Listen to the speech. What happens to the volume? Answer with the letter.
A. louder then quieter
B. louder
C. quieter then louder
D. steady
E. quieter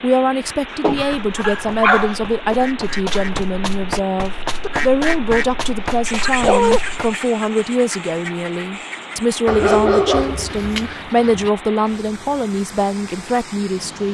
D.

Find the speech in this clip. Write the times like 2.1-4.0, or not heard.
0.0-14.0.